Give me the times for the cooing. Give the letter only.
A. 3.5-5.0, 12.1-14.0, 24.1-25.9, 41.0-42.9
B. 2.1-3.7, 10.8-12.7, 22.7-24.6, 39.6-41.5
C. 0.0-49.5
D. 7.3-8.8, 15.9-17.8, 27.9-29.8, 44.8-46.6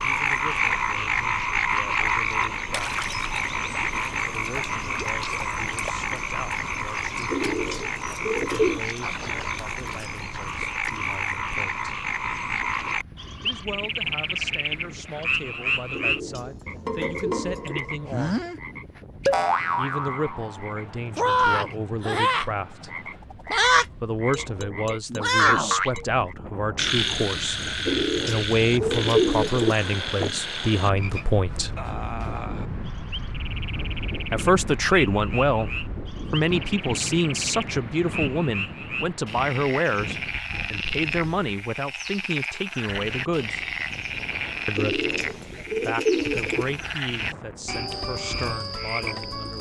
D.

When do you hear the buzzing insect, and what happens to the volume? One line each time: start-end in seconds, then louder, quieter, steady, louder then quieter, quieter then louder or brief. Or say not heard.
not heard.